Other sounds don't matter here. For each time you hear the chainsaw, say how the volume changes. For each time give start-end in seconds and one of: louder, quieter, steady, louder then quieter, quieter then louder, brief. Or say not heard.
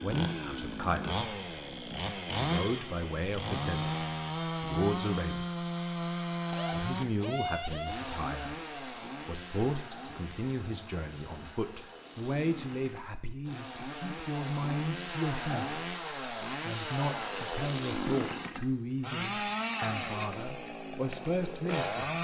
0.0-22.1 quieter then louder.